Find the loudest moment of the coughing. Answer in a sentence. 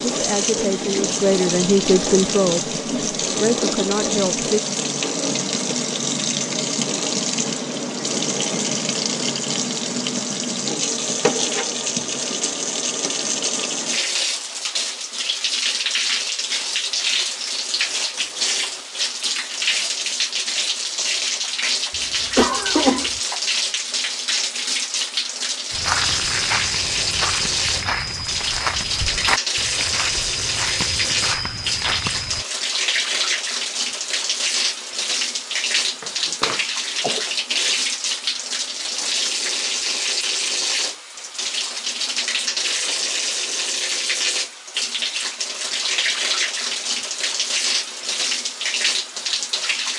The volume of the coughing peaks at 23 seconds.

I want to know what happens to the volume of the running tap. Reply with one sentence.
The loudness of the running tap stays about the same.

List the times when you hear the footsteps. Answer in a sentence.
The footsteps can be heard from 25.7 to 32.5 s.